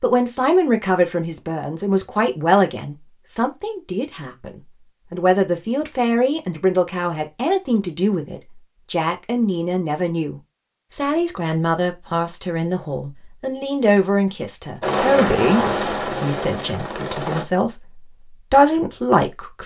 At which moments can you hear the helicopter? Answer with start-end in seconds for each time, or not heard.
14.8-17.4.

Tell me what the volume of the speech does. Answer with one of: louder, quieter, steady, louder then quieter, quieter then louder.
steady.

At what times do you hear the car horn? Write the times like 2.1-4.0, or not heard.
not heard.